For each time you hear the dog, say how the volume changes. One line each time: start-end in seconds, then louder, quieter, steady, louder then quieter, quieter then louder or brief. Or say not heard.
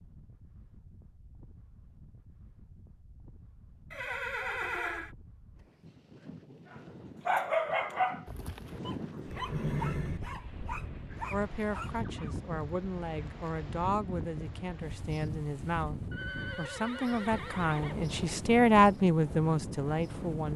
6.7-12.3 quieter.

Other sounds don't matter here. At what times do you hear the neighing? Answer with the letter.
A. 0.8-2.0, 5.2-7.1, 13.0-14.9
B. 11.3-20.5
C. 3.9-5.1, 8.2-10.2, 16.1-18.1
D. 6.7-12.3
C.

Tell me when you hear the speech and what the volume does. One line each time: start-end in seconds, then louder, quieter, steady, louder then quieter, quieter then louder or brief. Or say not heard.
11.3-20.5 louder.